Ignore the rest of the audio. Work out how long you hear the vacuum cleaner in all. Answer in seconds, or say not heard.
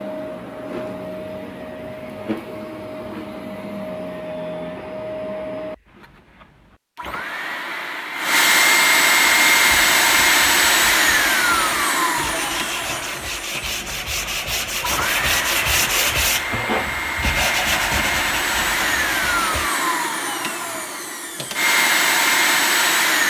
23 s.